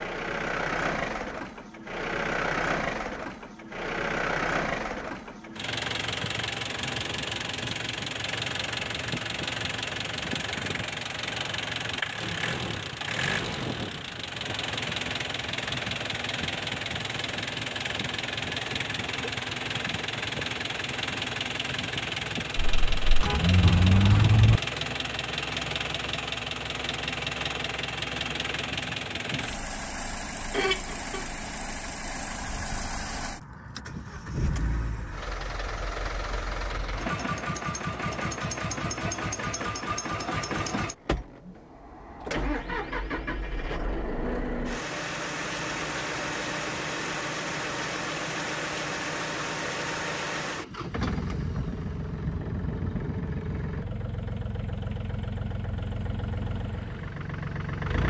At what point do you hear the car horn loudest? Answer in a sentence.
The loudest moment of the car horn is at 24 seconds.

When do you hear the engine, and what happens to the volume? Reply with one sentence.
You can hear the engine from 0.0 to 58.0 s, at a steady volume.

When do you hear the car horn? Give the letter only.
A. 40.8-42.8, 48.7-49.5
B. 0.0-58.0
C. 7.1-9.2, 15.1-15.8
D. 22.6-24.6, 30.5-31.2
D.